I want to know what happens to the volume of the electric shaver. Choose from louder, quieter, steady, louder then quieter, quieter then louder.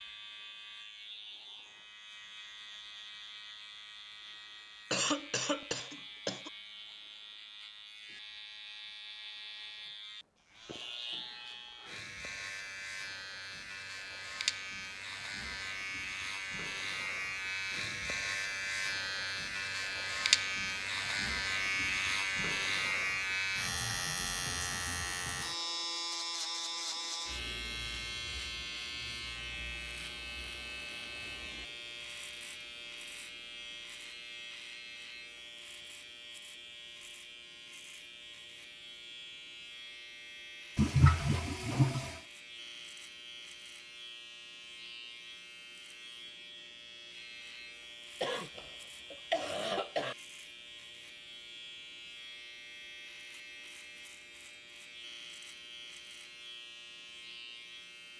louder then quieter.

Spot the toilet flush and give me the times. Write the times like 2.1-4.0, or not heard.
40.8-42.2.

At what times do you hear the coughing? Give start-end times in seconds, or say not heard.
4.9-6.5, 48.2-50.1.